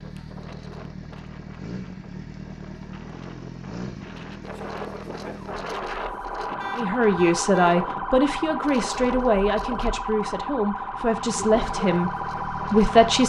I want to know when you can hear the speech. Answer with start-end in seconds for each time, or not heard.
6.8-13.2.